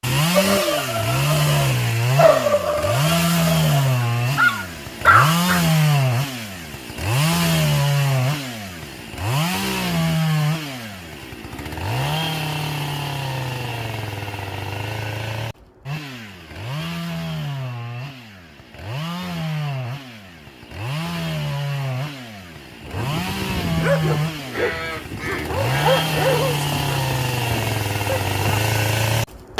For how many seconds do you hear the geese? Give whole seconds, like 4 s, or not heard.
2 s.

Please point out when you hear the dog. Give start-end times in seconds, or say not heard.
0.3-5.7, 22.8-28.6.